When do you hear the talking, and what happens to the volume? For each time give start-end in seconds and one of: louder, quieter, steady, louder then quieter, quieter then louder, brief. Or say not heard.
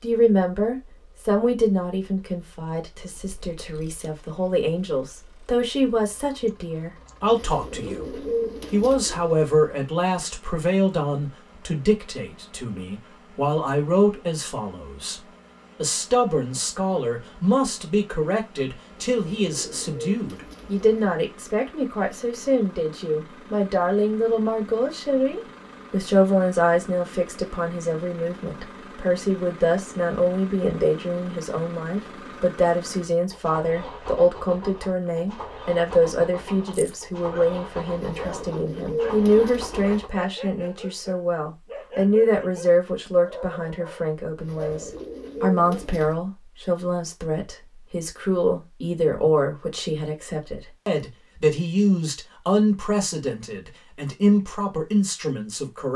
0.0-55.9 steady.